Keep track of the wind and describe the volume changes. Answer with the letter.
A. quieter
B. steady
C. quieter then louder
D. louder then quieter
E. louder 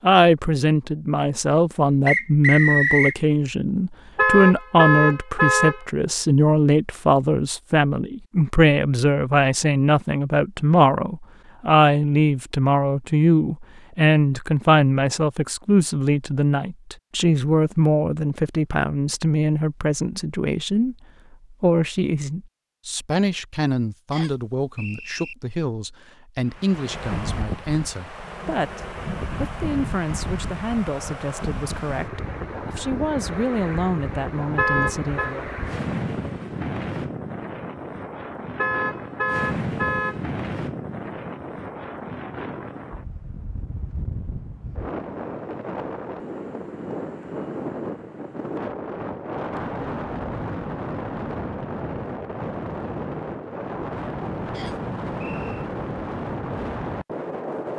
B.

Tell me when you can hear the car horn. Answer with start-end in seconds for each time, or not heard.
4.2-5.8, 34.5-35.4, 38.5-40.2.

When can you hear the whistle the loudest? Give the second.
3 s.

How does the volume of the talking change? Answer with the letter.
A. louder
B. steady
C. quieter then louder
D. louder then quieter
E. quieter
E.